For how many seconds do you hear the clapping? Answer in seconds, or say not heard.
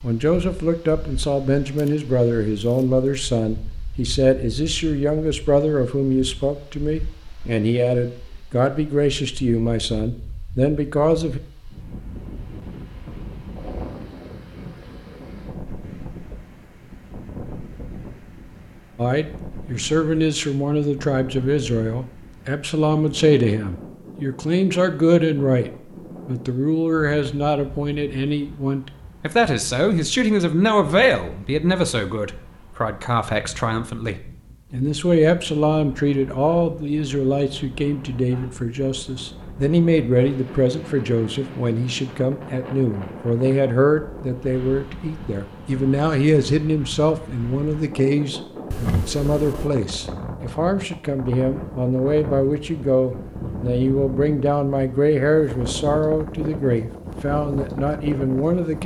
not heard.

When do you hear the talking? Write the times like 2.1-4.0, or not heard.
0.0-11.4, 18.9-58.8.